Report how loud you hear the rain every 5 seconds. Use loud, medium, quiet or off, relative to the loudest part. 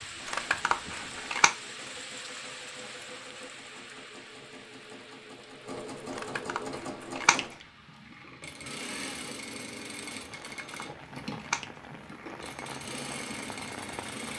loud, medium, loud.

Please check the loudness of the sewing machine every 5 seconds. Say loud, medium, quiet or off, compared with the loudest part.
medium, loud, loud.